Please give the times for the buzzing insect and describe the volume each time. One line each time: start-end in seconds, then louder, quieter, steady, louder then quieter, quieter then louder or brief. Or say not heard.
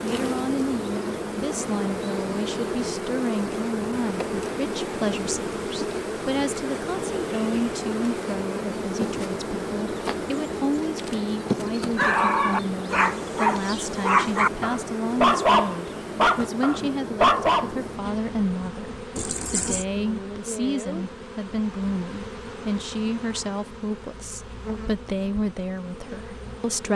0.0-26.9 quieter.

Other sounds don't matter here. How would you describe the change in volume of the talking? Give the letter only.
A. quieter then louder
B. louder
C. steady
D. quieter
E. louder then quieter
C.